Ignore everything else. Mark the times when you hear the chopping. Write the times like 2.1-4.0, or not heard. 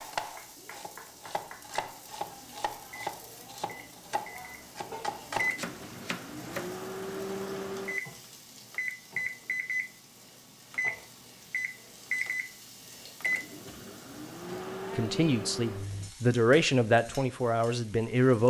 0.0-6.7.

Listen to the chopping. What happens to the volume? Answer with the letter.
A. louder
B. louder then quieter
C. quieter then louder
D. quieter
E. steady
A.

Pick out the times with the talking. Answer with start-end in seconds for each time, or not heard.
14.9-18.4.